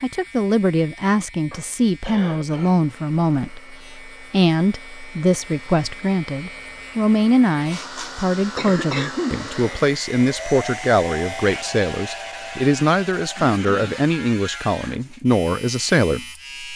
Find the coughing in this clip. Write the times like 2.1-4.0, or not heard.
1.5-2.9, 8.6-9.4, 13.3-14.1.